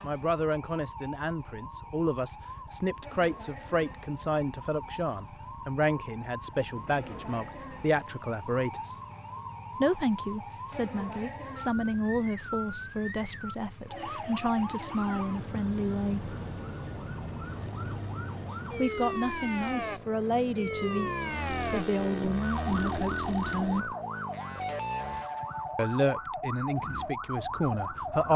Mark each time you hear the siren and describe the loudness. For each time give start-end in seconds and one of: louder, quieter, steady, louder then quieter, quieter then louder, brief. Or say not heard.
0.0-28.3 louder.